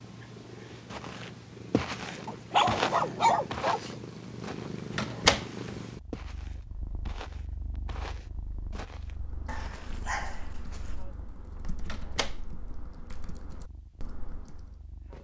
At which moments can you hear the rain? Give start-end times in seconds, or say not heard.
not heard.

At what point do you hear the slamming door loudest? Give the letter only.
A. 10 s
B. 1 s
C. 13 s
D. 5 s
D.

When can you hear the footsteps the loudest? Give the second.
3 s.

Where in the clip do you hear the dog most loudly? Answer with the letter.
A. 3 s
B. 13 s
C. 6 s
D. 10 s
A.